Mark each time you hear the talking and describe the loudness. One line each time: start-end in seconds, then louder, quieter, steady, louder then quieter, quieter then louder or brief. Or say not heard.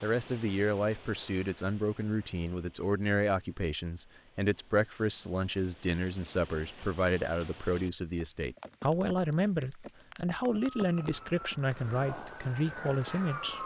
0.0-13.6 steady.